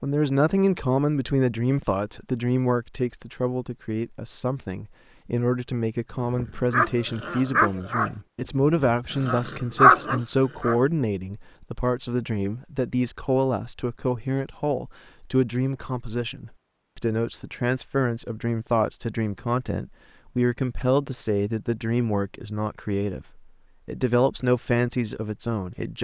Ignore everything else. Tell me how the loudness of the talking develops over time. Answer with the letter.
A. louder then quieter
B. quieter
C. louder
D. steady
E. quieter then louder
D.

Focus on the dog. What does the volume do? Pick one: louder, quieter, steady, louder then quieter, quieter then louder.
quieter then louder.